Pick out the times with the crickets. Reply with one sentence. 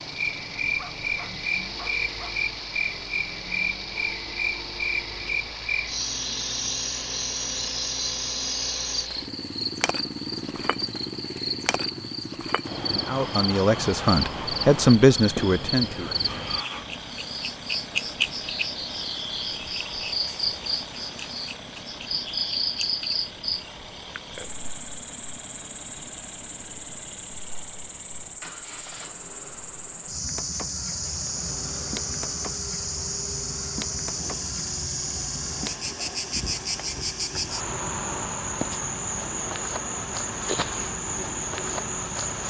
The crickets can be heard from 0.0 to 42.4 s.